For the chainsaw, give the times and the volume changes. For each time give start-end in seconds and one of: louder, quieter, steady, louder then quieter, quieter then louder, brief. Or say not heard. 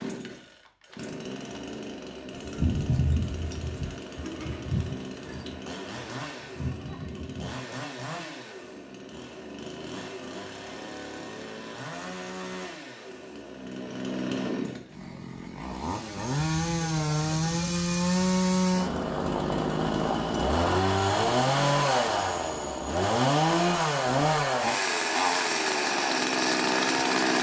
0.0-27.3 louder.